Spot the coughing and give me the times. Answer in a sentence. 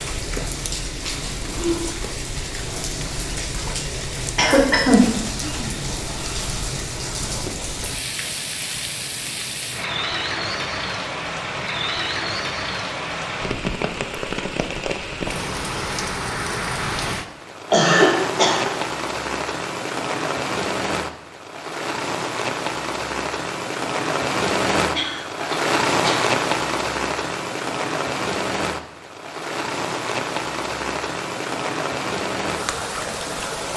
The coughing can be heard from 4.3 to 5.0 s, from 17.7 to 18.7 s and from 24.9 to 26.2 s.